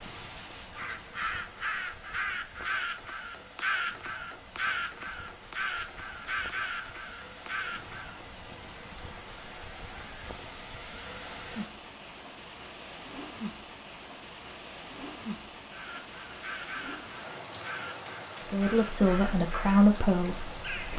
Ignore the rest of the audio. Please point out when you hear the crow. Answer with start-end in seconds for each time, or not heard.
0.0-8.2, 15.7-20.9.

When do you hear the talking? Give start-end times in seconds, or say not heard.
18.4-20.9.